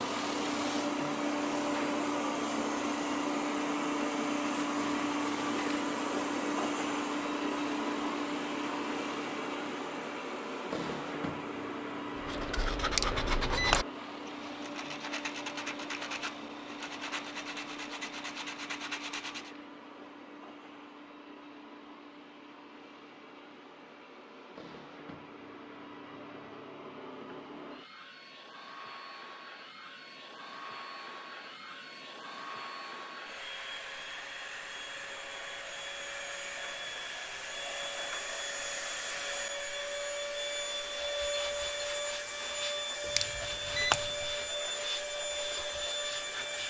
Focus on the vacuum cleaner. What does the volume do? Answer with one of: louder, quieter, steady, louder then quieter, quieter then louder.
quieter then louder.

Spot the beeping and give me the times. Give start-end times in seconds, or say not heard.
12.9-13.8, 43.1-44.2.